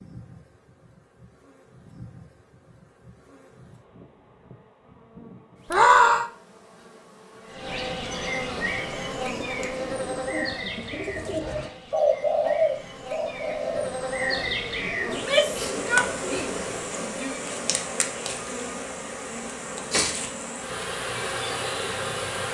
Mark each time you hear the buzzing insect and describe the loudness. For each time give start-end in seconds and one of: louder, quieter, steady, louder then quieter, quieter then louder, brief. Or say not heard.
0.0-22.4 louder.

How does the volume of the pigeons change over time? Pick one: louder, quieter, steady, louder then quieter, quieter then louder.
louder then quieter.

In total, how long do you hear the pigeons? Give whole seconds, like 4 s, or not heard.
8 s.